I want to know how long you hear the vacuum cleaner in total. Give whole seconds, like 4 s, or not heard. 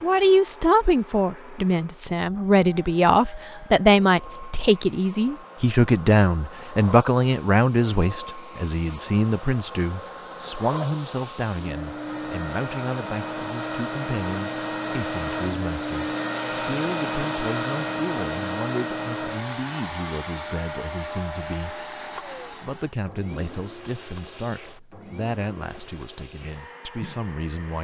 28 s.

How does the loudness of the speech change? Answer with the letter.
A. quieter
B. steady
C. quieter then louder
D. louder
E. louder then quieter
A.